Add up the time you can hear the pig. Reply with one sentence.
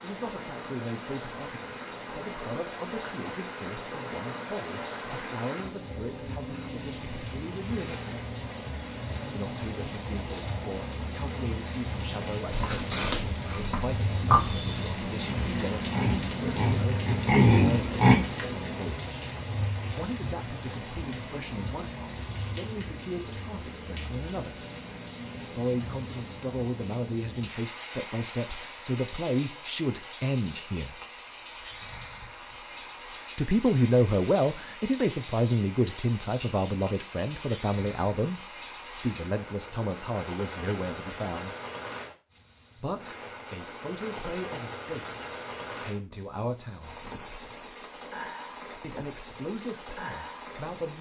You can hear the pig for 6 seconds altogether.